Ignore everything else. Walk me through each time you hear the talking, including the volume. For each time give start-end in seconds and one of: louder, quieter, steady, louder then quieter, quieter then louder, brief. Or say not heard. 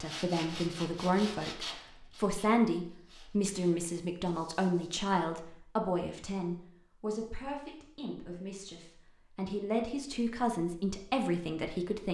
0.0-12.1 quieter then louder.